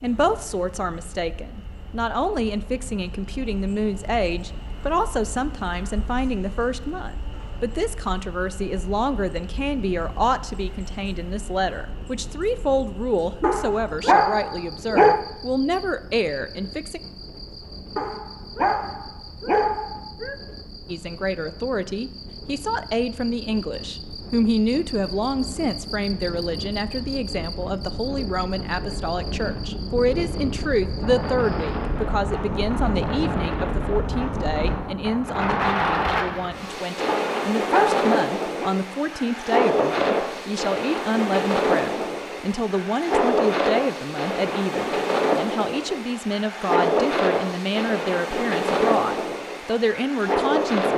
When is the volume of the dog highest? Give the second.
15 s.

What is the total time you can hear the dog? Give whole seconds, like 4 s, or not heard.
6 s.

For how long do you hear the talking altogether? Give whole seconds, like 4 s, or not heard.
47 s.